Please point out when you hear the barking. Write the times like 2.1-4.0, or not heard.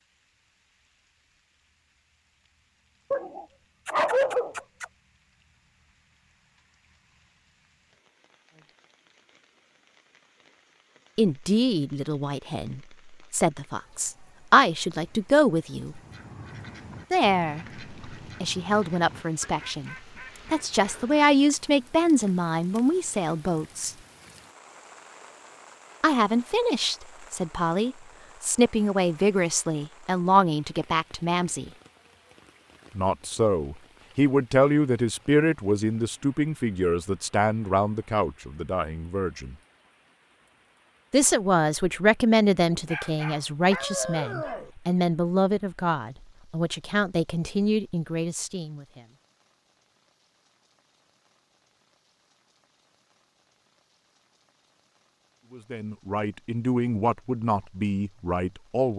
3.1-4.8, 42.7-44.7.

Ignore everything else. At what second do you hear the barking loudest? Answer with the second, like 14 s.
4 s.